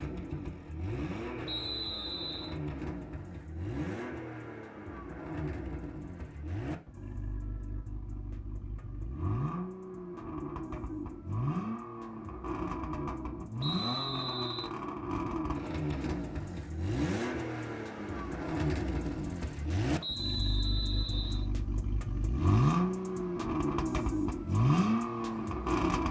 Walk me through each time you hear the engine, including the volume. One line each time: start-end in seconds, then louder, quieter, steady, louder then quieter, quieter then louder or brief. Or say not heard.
0.0-26.0 louder.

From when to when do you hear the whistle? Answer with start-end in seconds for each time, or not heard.
1.4-2.5, 13.6-14.7, 20.0-21.4.